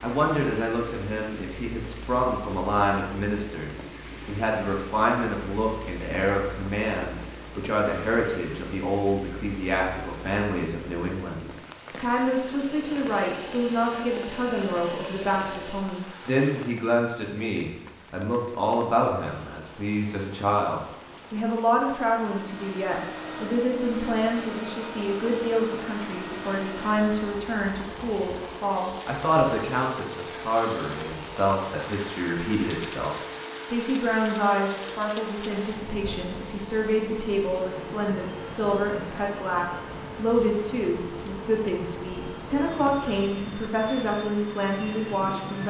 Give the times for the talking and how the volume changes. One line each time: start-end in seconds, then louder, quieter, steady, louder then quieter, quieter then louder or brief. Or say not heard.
0.0-45.6 steady.